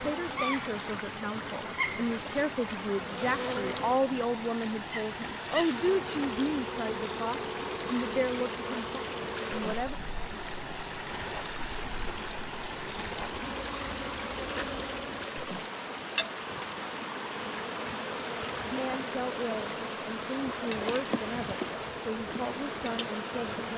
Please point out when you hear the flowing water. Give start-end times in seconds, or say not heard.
0.0-23.7.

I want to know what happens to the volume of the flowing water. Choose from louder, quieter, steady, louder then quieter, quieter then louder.
steady.